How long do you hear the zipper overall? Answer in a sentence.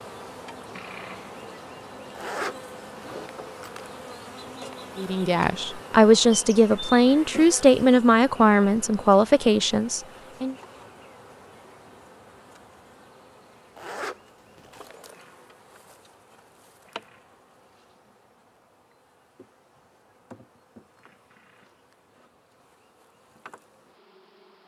You can hear the zipper for 3 seconds altogether.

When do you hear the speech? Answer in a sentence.
The speech can be heard from 5.0 to 10.6 s.